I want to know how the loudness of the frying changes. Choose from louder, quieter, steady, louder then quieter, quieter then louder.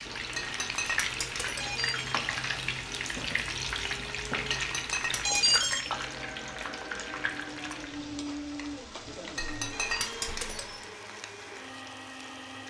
quieter.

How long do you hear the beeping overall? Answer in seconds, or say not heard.
2 s.